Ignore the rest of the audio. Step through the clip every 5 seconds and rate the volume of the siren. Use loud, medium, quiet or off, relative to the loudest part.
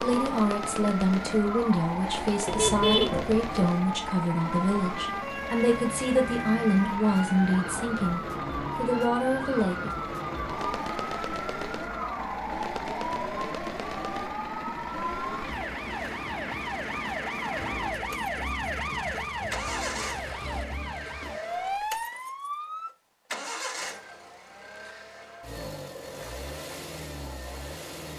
loud, loud, loud, loud, loud, off.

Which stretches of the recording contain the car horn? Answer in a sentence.
The car horn can be heard from 2.5 to 3.6 s.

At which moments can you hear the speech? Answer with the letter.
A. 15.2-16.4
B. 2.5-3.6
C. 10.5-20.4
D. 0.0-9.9
D.